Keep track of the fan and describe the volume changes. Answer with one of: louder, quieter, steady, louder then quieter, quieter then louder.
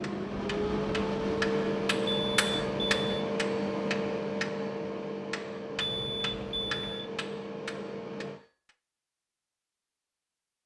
quieter.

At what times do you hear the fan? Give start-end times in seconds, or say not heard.
0.0-8.4.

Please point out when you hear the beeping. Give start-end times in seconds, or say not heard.
2.0-3.1, 5.8-7.1.